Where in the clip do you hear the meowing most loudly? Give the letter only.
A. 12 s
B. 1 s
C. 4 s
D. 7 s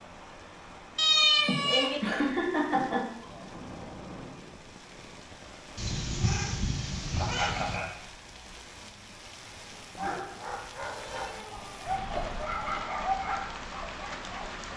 B.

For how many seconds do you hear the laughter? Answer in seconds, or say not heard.
4 s.